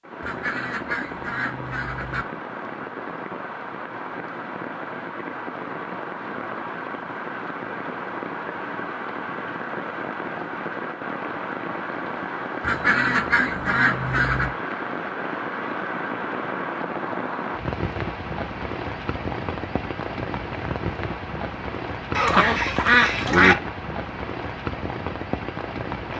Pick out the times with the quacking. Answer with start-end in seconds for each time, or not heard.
0.2-2.2, 12.6-14.5, 22.1-23.6.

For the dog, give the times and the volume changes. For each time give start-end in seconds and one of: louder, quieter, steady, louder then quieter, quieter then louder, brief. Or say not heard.
not heard.